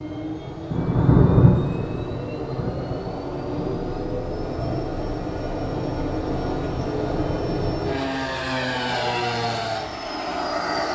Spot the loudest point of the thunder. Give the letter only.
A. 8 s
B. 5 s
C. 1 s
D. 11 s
C.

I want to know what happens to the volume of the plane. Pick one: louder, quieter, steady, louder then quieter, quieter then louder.
louder.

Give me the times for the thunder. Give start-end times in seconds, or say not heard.
0.7-4.8.